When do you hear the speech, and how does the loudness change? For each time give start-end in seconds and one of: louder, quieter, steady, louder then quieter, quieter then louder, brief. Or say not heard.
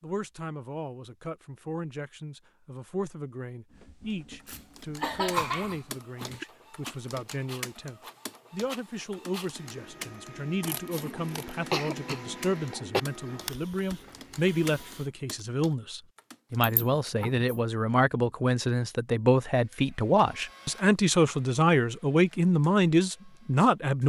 0.0-24.0 louder.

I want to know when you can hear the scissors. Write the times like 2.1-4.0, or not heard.
10.6-11.6.